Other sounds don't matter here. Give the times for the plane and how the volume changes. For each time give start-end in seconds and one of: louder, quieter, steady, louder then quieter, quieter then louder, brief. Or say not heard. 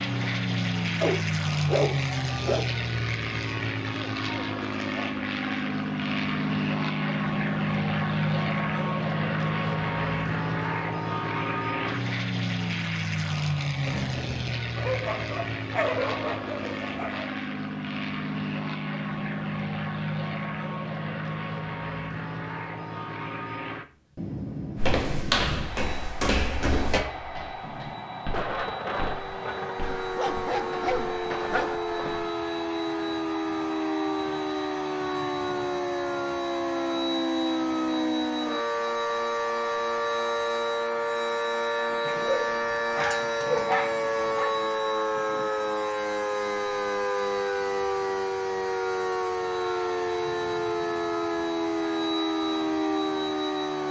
0.0-53.8 quieter.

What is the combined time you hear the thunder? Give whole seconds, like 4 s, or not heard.
7 s.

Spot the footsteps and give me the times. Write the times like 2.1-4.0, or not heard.
24.8-32.2.